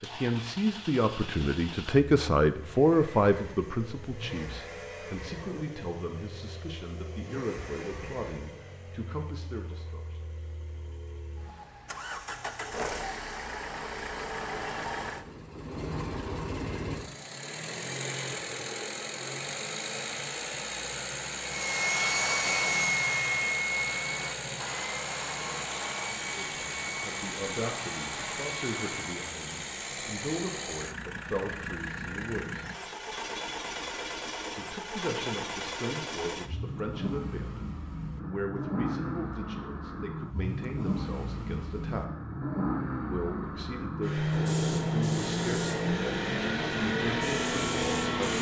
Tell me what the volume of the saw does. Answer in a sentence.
The volume of the saw goes down.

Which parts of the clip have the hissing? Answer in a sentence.
You can hear the hissing from 44.3 to 48.3 s.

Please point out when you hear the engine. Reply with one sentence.
You can hear the engine from 0.0 to 48.3 s.